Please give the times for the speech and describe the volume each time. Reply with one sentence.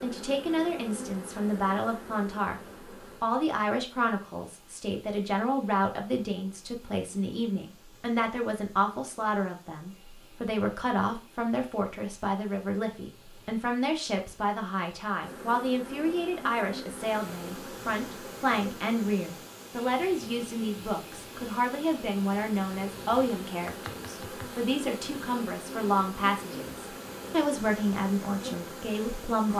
You can hear the speech briefly from 0.0 to 2.6 s; and from 3.2 to 29.5 s, at a steady volume.